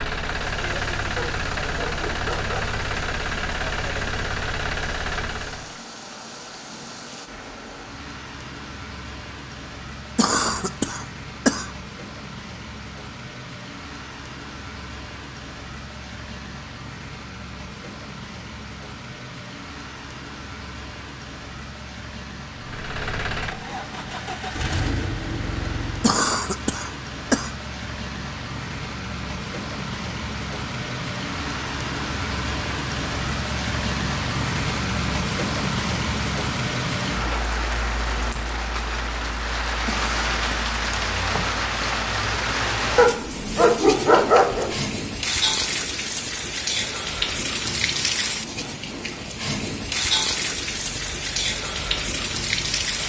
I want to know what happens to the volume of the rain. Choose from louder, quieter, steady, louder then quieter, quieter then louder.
louder.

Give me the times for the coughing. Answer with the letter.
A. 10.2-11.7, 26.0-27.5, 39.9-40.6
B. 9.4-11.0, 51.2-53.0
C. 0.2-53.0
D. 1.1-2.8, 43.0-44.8
A.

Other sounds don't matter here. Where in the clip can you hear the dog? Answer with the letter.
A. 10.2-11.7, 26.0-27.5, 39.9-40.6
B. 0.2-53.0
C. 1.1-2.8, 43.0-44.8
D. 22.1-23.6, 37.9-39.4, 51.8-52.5
C.